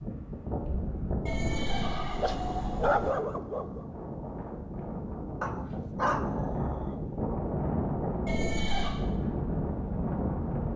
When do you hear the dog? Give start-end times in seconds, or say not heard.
2.2-3.9, 5.4-7.0.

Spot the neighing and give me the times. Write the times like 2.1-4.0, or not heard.
1.2-3.1, 8.2-8.9.